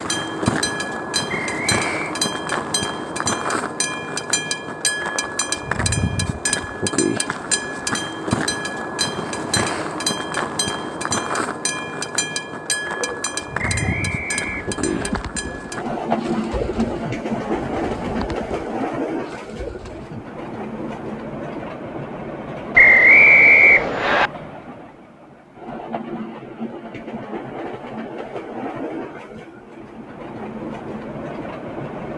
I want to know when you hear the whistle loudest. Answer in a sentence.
The volume of the whistle peaks at 23 seconds.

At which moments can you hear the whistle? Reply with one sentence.
The whistle can be heard from 1.4 to 2.1 s, from 13.7 to 15.1 s and from 22.8 to 24.3 s.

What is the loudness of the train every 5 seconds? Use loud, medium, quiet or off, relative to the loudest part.
loud, loud, loud, loud, medium, medium, medium.